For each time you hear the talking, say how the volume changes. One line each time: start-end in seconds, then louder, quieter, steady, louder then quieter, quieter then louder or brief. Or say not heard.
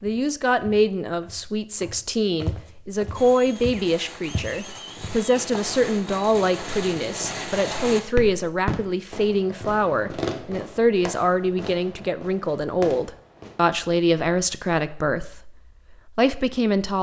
0.0-15.5 steady
16.1-16.9 brief.